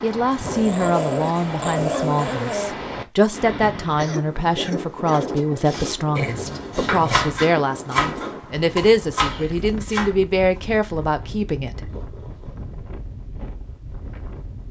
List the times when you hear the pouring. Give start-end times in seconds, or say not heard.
not heard.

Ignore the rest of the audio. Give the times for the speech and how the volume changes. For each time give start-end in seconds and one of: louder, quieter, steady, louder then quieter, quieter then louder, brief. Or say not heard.
0.0-11.9 steady.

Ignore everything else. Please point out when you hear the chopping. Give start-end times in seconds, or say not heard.
5.7-10.2.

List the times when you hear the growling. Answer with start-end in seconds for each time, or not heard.
0.5-2.8, 6.2-7.3, 11.8-12.7.